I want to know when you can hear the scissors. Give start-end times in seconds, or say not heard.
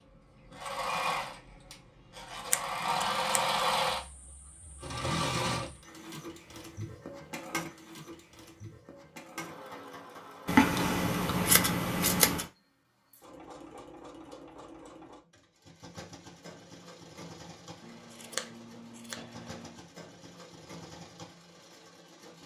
2.5-3.4, 10.4-12.4, 17.8-19.8.